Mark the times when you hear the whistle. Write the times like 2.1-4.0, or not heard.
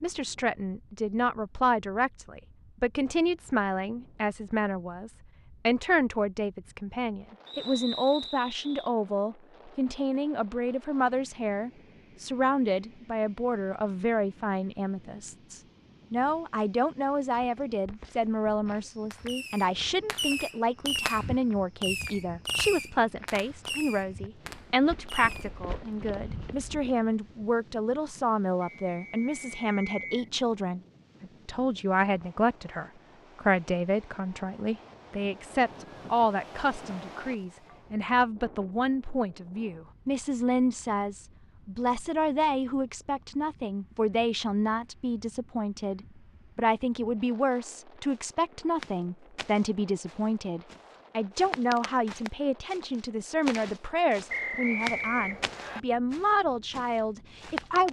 7.5-8.9, 28.6-30.3, 54.2-55.8.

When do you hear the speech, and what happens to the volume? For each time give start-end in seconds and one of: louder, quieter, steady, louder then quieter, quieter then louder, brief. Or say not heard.
0.0-57.8 steady.